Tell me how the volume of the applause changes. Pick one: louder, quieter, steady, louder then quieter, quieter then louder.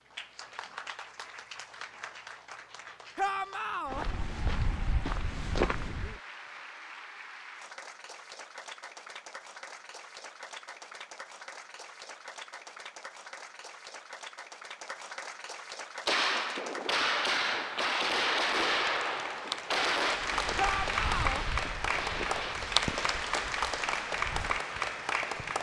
louder.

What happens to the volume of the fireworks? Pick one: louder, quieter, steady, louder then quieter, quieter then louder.
quieter.